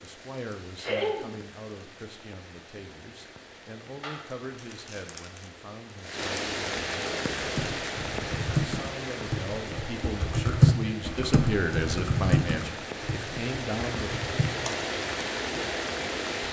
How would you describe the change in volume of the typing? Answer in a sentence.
The volume of the typing goes up, then down.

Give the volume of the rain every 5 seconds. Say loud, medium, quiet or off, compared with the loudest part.
quiet, loud, medium, loud.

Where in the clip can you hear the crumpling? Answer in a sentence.
You can hear the crumpling from 4.0 to 5.5 s.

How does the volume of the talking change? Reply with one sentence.
The volume of the talking goes up.